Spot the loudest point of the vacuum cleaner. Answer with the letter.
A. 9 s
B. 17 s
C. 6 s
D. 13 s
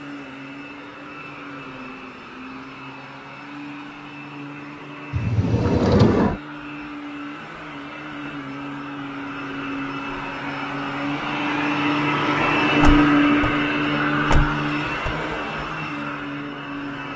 D.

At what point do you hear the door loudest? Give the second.
6 s.